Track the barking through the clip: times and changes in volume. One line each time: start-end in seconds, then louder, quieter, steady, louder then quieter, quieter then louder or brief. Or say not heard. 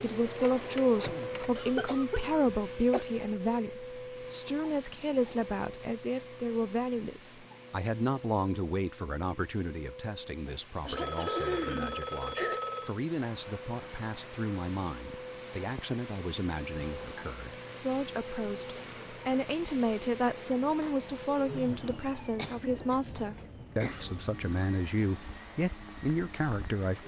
not heard.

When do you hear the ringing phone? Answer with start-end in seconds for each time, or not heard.
0.3-1.5, 10.9-12.9, 21.4-21.9.